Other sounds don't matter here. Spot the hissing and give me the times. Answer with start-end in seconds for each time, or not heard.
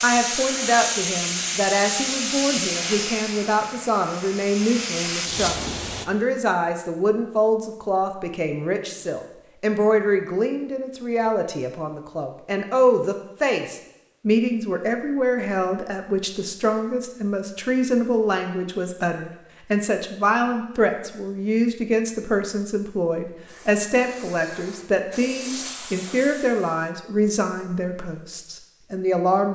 0.0-6.0, 23.4-26.9.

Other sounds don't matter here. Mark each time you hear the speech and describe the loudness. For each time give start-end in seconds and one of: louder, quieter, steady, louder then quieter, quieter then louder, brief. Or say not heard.
0.0-29.5 steady.